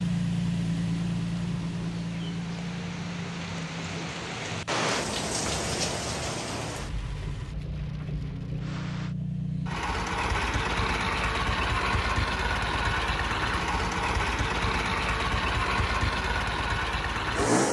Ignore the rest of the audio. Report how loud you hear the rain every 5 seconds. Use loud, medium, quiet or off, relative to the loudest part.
loud, loud, off, off.